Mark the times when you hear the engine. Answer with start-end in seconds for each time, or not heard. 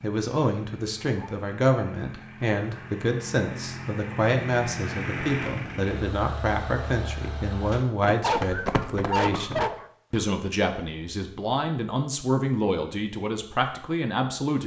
0.0-7.8.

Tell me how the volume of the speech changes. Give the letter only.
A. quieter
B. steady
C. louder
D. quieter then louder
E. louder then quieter
B.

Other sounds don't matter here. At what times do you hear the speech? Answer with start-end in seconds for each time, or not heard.
0.0-14.6.